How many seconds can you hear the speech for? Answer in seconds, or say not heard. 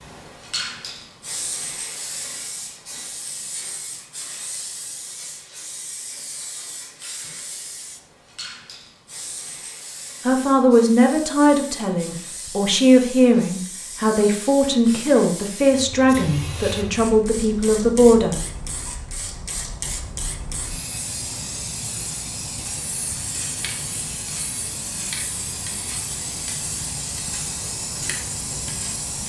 8 s.